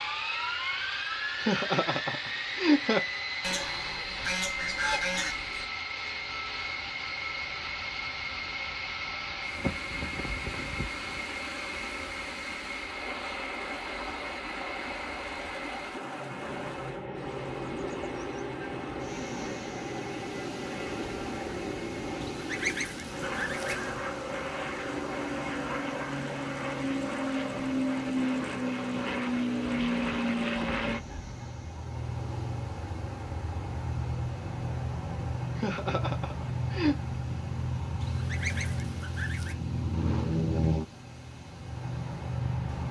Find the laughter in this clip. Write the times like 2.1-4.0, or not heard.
1.4-3.0, 35.5-37.0.